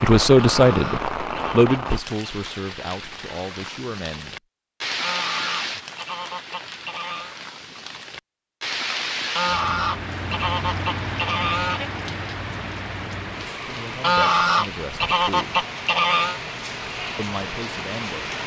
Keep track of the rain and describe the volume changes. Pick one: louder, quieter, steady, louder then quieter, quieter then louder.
steady.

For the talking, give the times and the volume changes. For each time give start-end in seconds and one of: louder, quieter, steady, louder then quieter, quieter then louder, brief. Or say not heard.
0.0-4.3 quieter
13.7-15.7 brief
17.1-18.4 brief.